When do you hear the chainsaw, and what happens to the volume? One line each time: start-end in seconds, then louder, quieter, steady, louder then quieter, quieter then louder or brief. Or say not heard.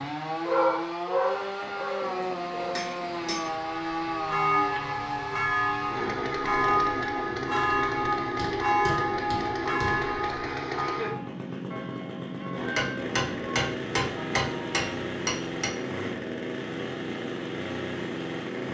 0.0-18.6 steady.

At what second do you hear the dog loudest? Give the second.
1 s.